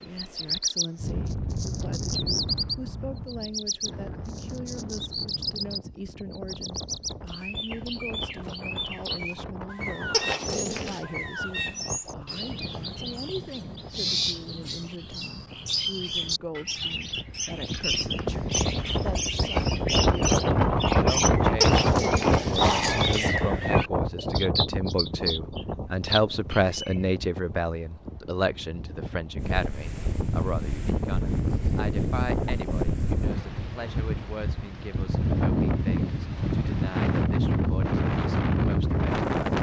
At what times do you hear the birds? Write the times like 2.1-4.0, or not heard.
0.0-26.9.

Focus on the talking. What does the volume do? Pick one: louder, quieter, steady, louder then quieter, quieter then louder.
louder then quieter.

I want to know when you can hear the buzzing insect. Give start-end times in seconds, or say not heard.
not heard.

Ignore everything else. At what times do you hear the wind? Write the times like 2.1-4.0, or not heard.
0.0-39.5.